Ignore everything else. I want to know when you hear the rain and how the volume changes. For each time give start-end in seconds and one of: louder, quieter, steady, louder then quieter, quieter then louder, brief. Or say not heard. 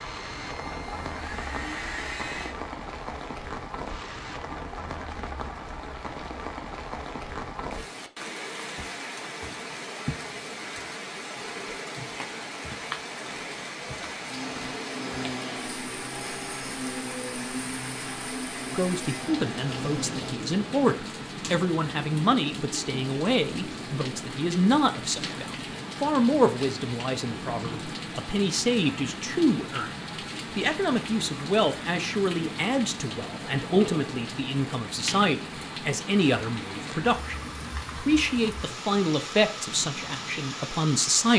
0.0-41.3 steady.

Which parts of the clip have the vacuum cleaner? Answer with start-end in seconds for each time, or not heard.
0.0-2.5, 14.2-20.4.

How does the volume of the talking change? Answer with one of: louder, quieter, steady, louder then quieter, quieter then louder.
steady.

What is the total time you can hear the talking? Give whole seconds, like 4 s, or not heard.
22 s.